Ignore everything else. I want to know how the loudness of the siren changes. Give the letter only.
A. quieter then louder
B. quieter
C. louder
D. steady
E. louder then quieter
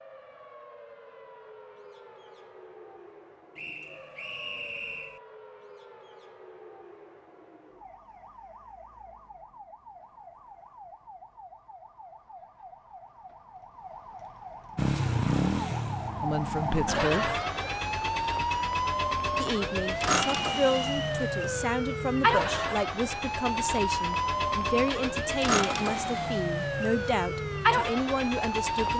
C.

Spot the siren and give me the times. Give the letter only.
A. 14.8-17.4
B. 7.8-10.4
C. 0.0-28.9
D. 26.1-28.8
C.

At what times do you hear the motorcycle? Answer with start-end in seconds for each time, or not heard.
14.8-17.4.